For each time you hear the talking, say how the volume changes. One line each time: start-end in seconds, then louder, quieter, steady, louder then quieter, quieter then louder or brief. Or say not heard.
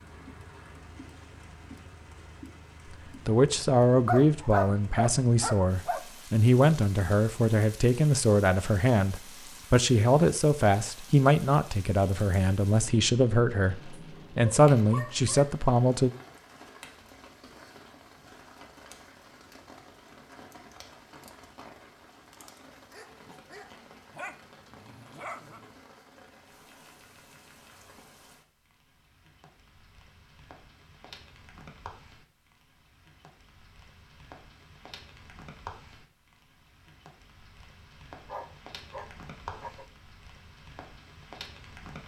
3.2-16.1 steady.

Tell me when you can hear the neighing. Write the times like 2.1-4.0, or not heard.
not heard.